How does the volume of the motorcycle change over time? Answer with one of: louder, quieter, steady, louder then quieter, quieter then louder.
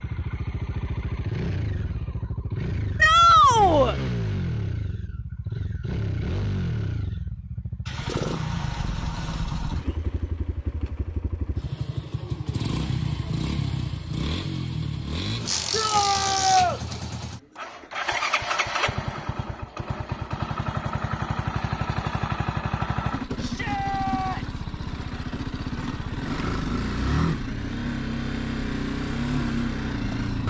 steady.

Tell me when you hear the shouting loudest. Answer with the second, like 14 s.
3 s.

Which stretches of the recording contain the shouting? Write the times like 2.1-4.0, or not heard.
3.0-4.0, 15.7-16.8, 23.4-24.6.